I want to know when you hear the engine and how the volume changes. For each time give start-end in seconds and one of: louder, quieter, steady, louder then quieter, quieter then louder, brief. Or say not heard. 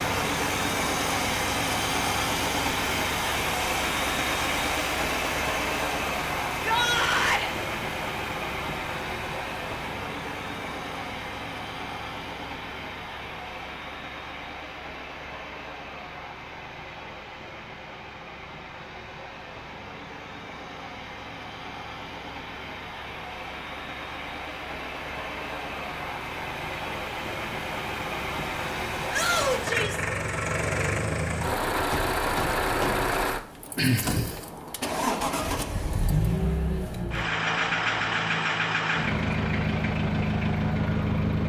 0.0-41.4 quieter then louder.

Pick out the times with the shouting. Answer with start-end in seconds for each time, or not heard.
6.5-7.5, 29.1-30.1.